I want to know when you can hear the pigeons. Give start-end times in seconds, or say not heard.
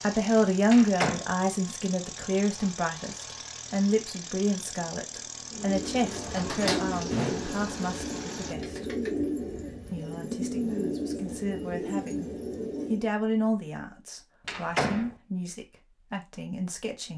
5.5-13.1.